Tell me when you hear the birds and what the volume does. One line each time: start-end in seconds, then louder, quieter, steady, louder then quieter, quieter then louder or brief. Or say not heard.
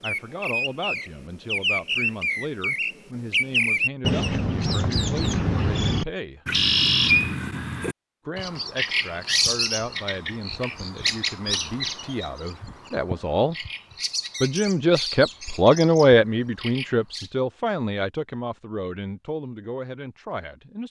0.0-17.3 quieter.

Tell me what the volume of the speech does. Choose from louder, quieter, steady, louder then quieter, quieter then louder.
louder then quieter.